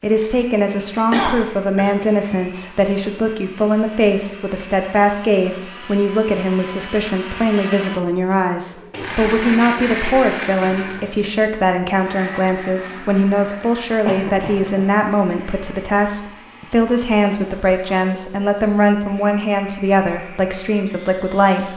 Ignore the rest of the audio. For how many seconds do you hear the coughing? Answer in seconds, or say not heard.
2 s.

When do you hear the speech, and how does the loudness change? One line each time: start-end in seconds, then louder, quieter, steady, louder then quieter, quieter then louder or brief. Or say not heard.
0.0-21.7 steady.